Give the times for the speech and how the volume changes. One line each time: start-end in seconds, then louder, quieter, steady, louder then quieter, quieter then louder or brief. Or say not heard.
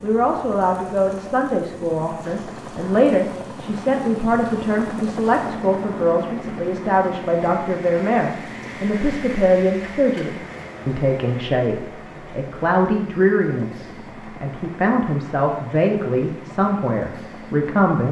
0.0-18.0 steady.